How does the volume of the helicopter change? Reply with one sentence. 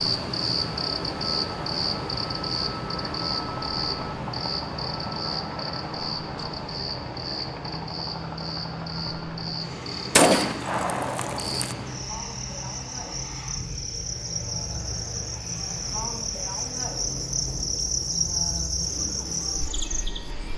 The volume of the helicopter goes down.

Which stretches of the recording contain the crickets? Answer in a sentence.
The crickets can be heard from 0.0 to 20.5 s.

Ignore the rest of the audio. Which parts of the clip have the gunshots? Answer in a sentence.
You can hear the gunshots from 10.2 to 11.8 s.